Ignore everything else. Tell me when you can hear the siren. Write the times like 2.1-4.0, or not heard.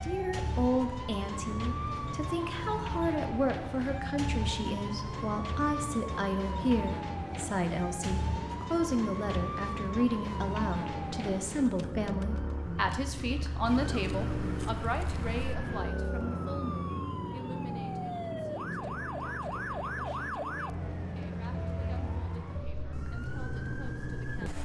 0.0-24.5.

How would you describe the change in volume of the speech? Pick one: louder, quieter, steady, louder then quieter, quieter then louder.
quieter.